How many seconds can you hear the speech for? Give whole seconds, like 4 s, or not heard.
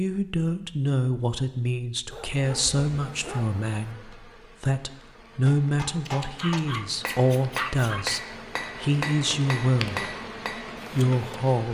11 s.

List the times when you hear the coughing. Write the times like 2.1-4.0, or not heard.
not heard.